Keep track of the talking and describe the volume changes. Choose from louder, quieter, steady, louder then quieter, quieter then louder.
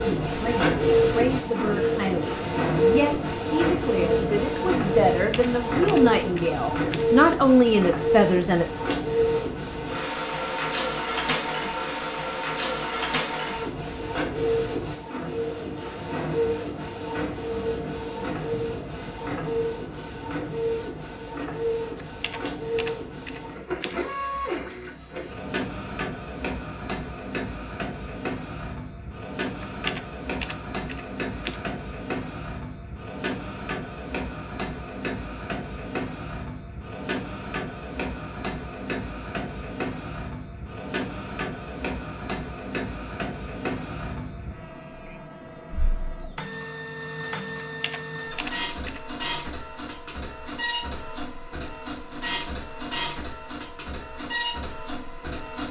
louder.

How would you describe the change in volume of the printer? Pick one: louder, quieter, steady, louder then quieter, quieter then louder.
quieter.